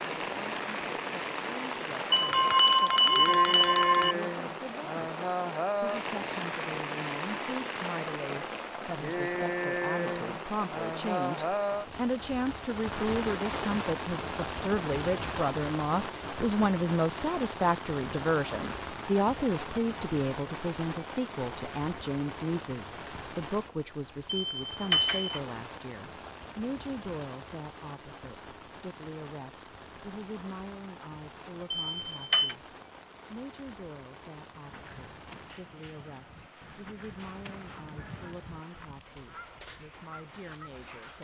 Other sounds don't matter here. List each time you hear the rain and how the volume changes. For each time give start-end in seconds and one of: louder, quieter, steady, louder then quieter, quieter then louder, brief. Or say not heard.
0.0-41.1 quieter.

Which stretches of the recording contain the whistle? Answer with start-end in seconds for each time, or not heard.
not heard.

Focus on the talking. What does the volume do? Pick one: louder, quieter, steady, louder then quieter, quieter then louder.
louder then quieter.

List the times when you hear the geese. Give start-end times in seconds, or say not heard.
34.6-40.9.